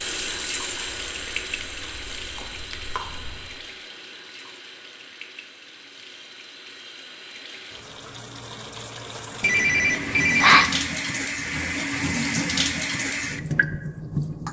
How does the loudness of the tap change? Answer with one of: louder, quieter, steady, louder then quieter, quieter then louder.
quieter then louder.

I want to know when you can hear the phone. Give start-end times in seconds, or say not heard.
9.4-10.7.